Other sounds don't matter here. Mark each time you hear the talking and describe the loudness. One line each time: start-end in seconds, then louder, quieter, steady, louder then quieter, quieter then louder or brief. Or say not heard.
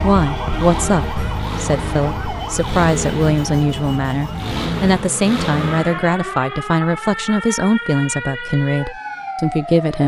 0.0-10.0 steady.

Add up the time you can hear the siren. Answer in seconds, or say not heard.
10 s.